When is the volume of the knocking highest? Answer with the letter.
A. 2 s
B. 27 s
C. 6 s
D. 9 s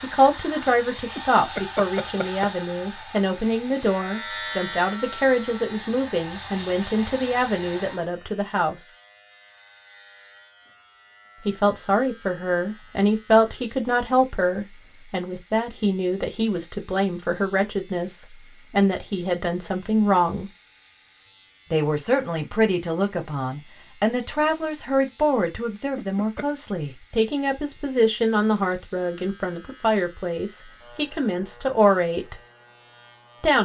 A.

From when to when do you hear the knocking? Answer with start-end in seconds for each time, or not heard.
1.1-2.5, 25.9-26.4.